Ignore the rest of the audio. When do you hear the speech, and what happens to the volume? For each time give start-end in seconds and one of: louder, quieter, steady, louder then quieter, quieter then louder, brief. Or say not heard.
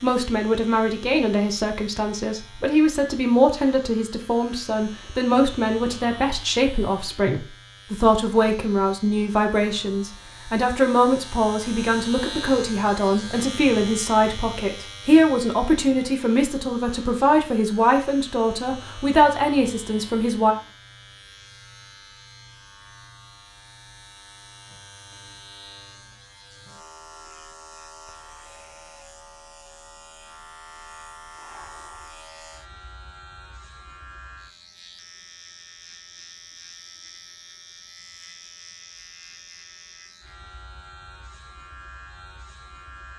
0.0-20.6 steady.